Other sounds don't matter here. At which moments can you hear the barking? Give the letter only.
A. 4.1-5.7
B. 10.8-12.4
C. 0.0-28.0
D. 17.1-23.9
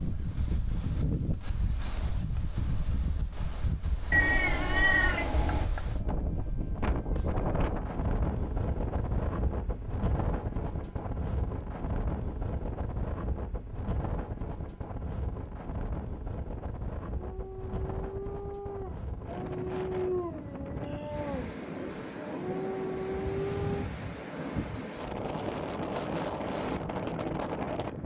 D.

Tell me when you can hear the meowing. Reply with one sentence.
The meowing can be heard from 4.1 to 5.7 s.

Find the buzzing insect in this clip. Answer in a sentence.
The buzzing insect can't be heard in this clip.